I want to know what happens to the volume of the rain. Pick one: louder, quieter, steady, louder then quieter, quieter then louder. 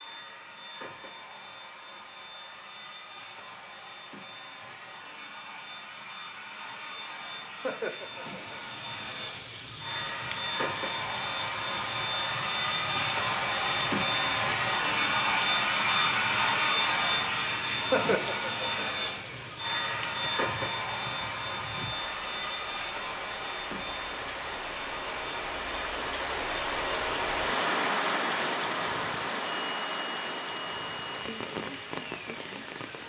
louder.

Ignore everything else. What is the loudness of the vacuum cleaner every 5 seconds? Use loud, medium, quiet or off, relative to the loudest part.
quiet, quiet, loud, loud, medium, quiet, quiet.